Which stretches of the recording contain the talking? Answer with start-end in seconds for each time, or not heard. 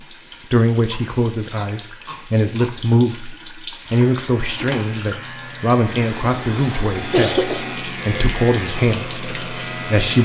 0.5-10.1.